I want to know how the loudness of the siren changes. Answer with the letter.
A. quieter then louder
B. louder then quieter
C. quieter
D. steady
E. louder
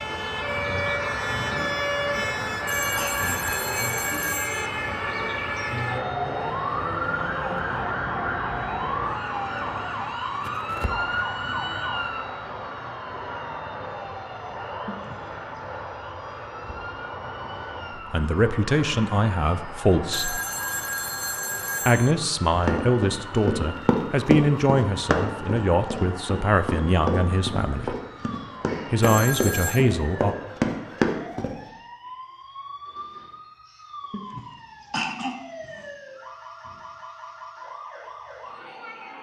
C.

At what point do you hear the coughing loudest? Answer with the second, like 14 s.
35 s.